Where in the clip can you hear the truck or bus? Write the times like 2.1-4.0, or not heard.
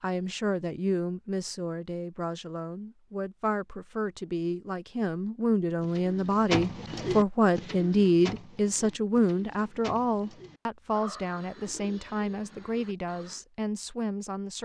not heard.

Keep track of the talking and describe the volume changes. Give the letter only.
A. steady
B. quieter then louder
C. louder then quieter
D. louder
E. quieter
C.